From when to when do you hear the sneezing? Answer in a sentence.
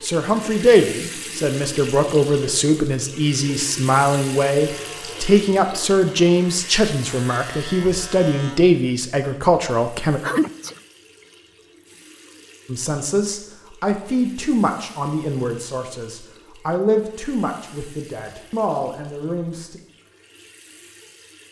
You can hear the sneezing from 10.2 to 10.8 s.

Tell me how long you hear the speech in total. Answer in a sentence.
The speech can be heard for 17 seconds in total.